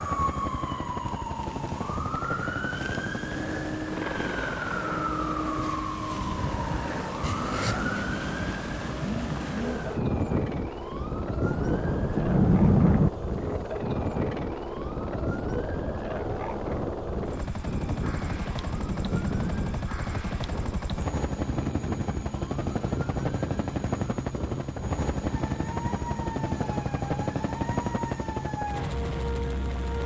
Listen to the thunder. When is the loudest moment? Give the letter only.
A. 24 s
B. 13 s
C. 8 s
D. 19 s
B.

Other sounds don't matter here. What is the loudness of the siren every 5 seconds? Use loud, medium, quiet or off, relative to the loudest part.
loud, loud, loud, medium, medium, medium.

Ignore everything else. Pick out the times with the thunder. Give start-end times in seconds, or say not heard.
11.4-13.1, 18.1-19.8.